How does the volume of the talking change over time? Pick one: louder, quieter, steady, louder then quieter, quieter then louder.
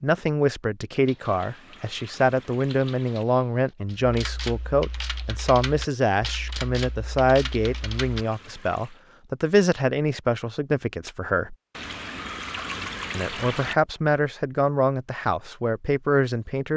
steady.